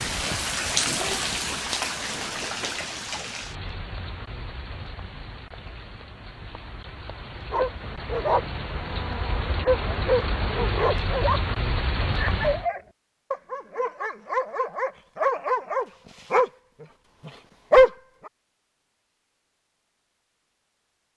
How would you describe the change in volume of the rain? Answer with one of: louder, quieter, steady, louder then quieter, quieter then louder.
quieter then louder.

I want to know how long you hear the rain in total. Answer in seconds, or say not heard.
13 s.